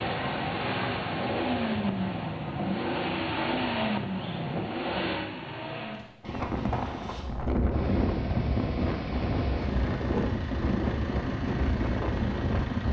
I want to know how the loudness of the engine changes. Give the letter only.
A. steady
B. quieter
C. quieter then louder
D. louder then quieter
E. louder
B.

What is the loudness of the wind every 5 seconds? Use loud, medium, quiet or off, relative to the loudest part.
off, loud, loud.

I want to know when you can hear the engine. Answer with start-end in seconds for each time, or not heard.
0.0-12.8.